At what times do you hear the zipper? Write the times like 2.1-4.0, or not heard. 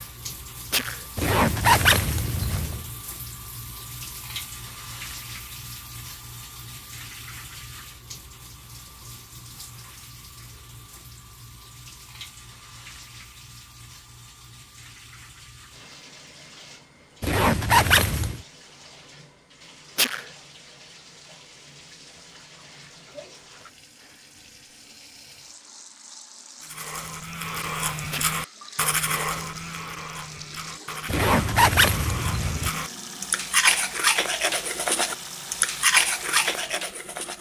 1.1-2.9, 17.2-18.4, 31.1-32.7.